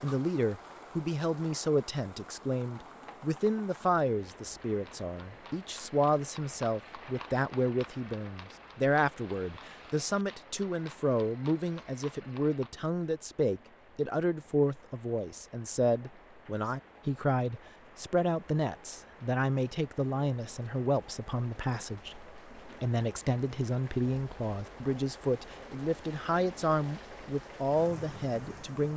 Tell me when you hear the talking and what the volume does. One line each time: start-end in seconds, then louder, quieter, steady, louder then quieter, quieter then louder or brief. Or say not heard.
0.0-28.9 steady.